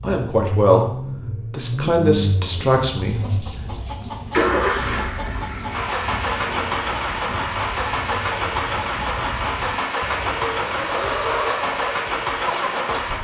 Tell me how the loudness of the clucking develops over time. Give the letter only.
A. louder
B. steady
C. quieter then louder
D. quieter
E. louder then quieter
A.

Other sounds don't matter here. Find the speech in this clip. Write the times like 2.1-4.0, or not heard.
0.0-3.5.